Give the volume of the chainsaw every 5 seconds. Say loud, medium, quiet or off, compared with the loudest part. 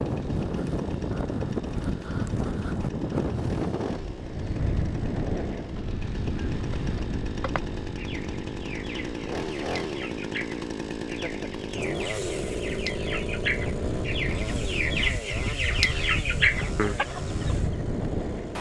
medium, loud, loud, medium.